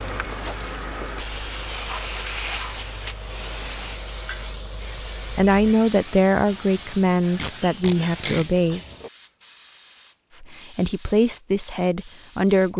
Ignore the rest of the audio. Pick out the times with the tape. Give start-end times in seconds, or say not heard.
7.3-8.4.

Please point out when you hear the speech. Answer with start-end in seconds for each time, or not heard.
5.3-8.8, 10.4-12.7.